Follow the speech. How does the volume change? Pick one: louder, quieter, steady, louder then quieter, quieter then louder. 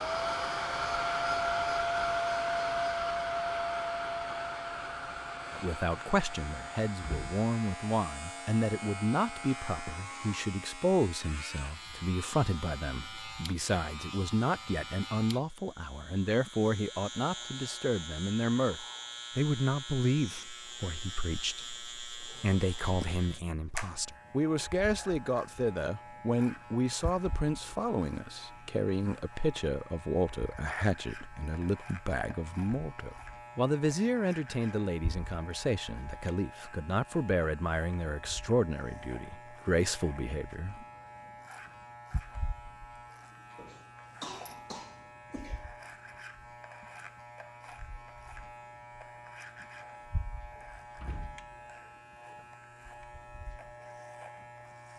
steady.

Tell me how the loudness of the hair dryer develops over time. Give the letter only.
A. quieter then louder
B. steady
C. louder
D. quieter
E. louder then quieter
D.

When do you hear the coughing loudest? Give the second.
44 s.